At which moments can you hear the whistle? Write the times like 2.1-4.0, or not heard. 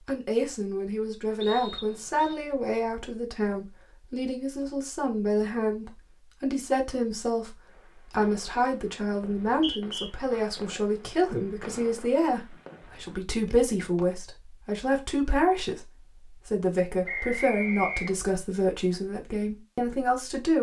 1.4-2.4, 9.4-10.1, 17.1-18.2.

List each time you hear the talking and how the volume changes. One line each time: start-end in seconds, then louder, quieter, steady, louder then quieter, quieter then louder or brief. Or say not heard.
0.1-20.5 steady.